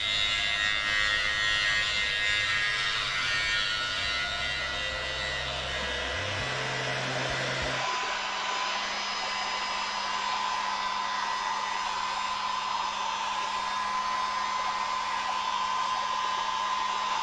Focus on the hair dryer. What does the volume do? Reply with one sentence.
The loudness of the hair dryer goes up.